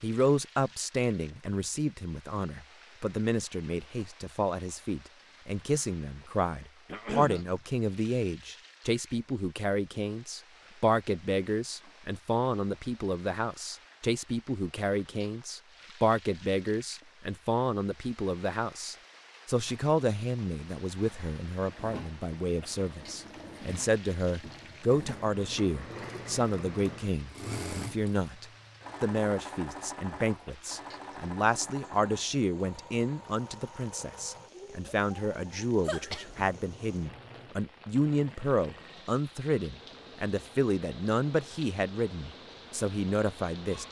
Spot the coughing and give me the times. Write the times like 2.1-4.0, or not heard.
6.8-7.5, 35.9-36.5.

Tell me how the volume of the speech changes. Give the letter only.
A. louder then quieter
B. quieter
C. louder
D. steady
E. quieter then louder
D.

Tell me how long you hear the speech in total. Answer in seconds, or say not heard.
44 s.